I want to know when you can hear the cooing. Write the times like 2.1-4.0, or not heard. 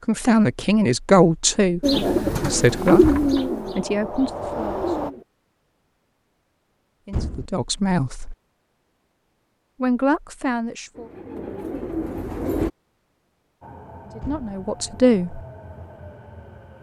1.8-5.2, 10.9-12.7.